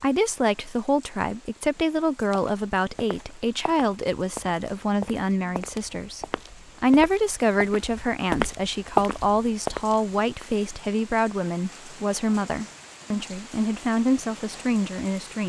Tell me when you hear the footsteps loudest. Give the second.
9 s.